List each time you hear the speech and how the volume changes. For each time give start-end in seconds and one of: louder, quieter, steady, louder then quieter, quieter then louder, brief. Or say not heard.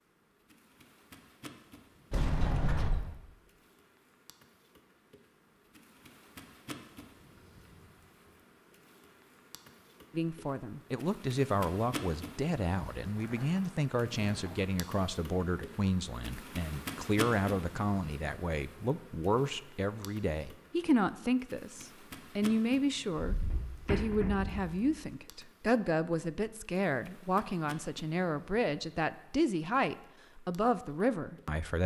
10.1-31.8 steady.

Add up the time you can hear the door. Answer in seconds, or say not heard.
4 s.